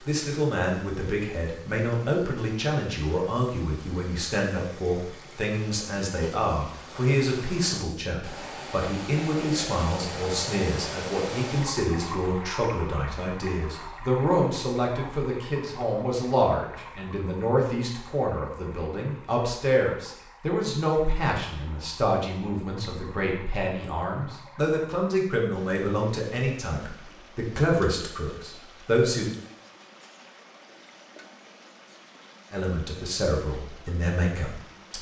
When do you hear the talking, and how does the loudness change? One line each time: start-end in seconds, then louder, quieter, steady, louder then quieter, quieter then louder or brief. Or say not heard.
0.0-29.3 steady
32.5-34.9 brief.